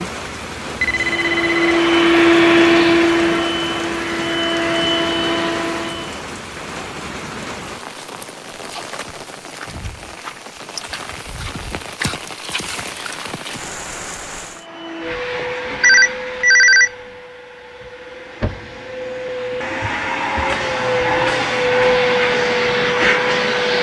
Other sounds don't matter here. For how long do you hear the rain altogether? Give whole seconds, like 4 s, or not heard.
15 s.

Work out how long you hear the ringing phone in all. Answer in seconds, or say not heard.
2 s.